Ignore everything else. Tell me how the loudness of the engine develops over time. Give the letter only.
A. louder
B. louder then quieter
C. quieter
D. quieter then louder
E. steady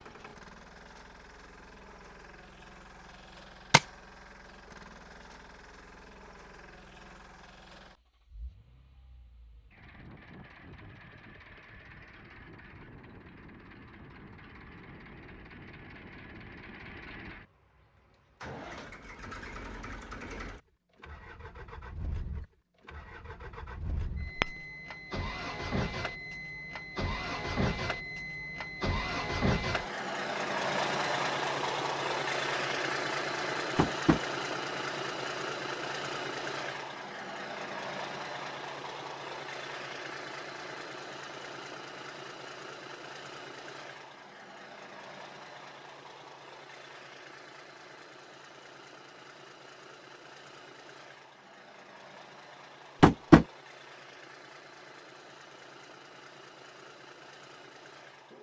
B.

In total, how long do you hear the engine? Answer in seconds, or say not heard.
58 s.